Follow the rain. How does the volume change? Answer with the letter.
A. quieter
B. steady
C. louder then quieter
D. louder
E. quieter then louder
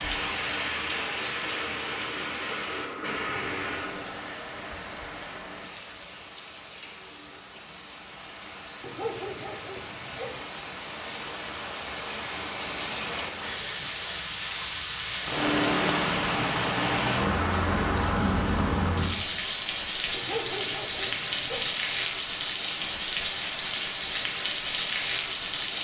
E.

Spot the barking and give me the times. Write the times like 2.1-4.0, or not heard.
8.8-10.4, 20.1-21.7.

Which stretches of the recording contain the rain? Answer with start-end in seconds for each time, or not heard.
0.0-25.7.